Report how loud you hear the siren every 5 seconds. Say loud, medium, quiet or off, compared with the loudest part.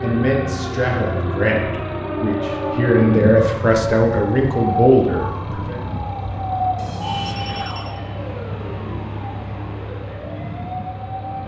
loud, loud, medium.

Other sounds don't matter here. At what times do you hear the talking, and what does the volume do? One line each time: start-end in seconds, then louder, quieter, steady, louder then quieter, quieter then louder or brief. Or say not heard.
0.0-5.8 louder.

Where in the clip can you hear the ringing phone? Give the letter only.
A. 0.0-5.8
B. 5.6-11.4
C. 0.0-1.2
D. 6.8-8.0
D.